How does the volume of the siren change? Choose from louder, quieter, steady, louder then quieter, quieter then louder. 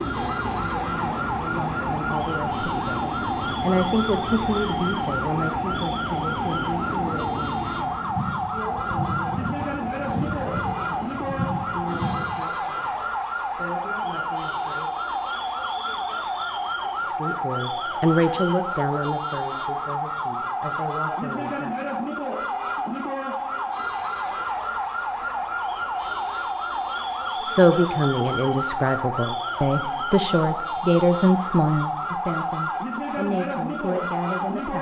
steady.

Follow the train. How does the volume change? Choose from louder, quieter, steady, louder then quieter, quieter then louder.
steady.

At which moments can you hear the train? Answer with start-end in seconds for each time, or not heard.
0.0-12.4.